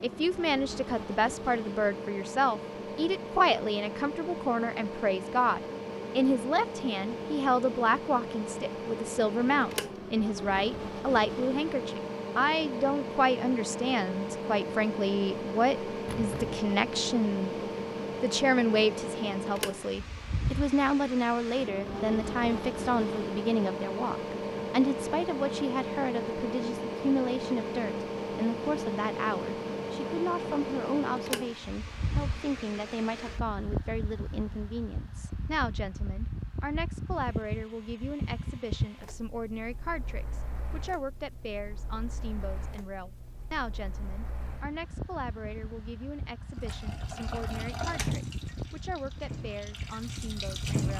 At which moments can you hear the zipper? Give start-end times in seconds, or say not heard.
16.1-16.7.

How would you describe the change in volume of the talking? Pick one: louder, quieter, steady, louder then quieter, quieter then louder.
quieter.